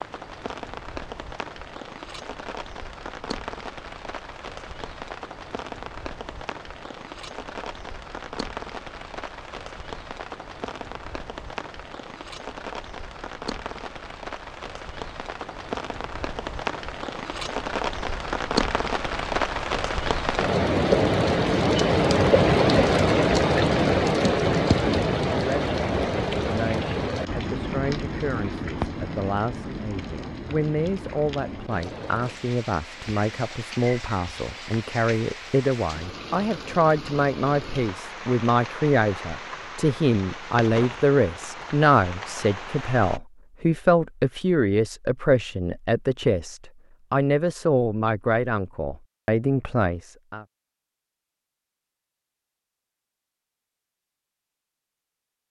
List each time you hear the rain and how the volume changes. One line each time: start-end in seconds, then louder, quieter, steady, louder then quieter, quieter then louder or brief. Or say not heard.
0.0-43.2 louder then quieter.